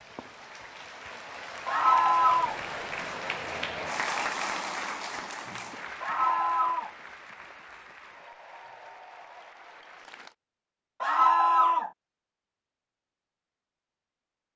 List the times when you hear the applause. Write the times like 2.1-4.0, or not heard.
0.0-10.3.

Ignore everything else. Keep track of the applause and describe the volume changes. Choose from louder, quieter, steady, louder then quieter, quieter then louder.
louder then quieter.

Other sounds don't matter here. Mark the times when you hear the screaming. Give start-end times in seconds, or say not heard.
1.6-2.5, 6.0-6.9, 11.0-11.9.